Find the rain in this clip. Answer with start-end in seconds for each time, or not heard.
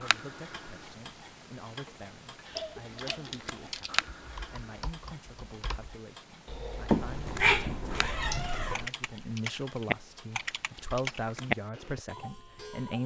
not heard.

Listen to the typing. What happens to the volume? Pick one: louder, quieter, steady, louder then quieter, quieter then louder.
quieter then louder.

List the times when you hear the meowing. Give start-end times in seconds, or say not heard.
6.8-8.9.